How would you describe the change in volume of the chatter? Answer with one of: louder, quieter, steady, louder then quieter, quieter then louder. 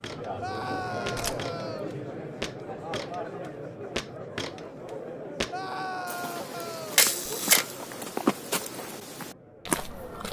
quieter.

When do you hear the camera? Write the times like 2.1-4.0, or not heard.
0.6-1.4, 7.0-8.0.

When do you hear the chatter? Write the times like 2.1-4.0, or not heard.
0.0-10.2.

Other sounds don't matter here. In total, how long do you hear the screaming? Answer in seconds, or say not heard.
3 s.